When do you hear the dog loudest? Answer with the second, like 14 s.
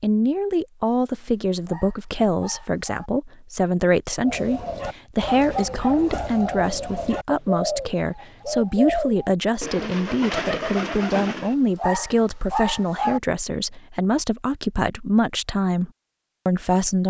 13 s.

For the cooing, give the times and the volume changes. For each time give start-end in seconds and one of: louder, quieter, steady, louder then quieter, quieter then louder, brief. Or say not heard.
4.2-11.6 steady.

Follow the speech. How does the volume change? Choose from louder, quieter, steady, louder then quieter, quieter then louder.
steady.